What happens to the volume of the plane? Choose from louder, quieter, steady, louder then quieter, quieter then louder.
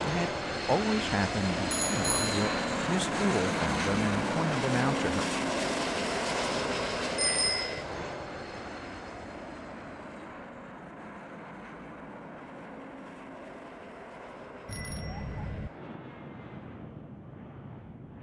quieter.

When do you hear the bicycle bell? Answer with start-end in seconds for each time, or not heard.
1.7-2.5, 7.2-7.8, 14.7-15.7.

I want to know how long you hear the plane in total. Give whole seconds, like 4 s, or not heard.
18 s.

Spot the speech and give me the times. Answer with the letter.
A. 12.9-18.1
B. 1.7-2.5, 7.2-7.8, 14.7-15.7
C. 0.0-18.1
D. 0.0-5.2
D.